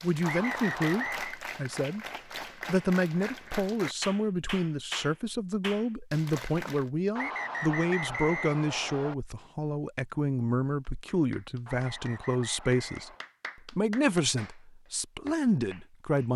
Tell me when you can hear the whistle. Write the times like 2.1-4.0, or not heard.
0.2-1.4, 7.2-9.2, 11.7-13.2.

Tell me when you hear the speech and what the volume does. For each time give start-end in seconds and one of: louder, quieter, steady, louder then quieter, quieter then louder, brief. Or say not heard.
0.0-2.0 brief
2.6-16.3 steady.